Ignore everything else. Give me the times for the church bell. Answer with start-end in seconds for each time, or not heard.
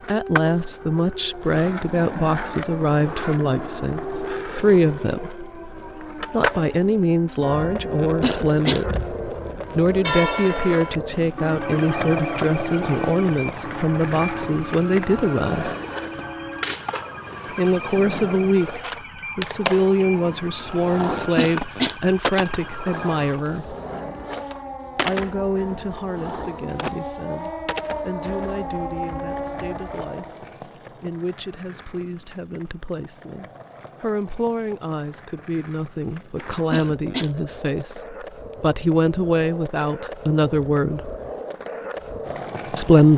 7.4-16.8.